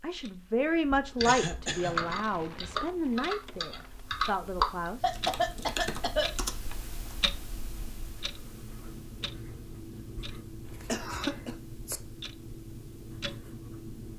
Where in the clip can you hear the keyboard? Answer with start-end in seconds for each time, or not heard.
1.2-7.2.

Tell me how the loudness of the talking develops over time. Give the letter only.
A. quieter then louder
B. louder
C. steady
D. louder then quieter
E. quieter
E.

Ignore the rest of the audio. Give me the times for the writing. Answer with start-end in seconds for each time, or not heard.
5.0-14.1.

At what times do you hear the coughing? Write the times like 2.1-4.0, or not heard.
1.2-1.9, 5.0-6.8, 10.7-11.6.